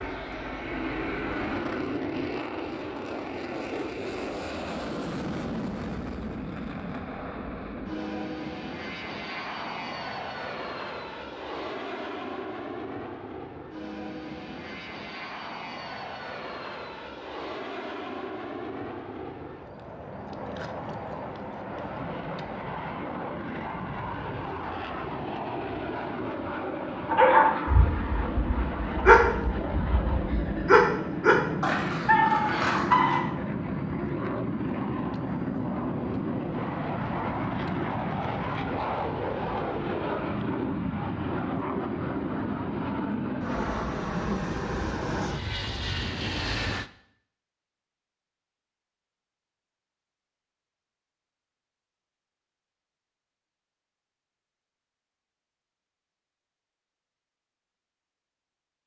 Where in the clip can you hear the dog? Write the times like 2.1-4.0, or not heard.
27.1-33.2.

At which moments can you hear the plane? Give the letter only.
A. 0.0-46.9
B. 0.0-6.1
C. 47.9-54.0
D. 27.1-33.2
A.